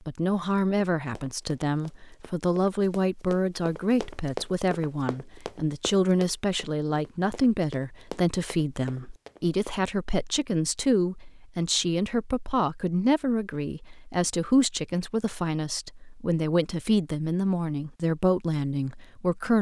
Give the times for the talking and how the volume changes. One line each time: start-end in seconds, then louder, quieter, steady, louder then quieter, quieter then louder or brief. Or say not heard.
0.1-19.5 steady.